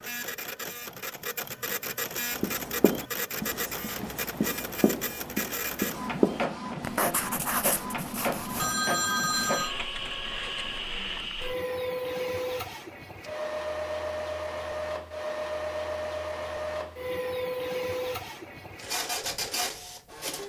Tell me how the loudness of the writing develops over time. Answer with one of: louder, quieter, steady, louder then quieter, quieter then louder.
louder then quieter.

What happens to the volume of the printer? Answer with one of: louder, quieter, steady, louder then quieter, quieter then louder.
steady.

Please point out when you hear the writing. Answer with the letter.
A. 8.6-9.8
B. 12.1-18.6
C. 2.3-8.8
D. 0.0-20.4
C.